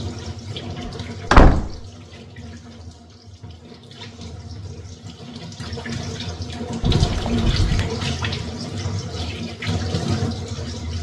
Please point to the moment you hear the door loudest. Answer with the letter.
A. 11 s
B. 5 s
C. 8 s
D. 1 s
D.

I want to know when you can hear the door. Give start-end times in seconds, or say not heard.
0.8-1.8, 6.8-7.8.